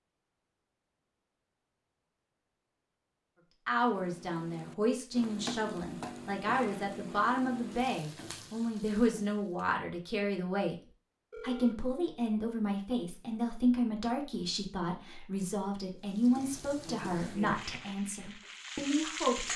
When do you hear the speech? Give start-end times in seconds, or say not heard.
3.6-10.8, 11.4-19.5.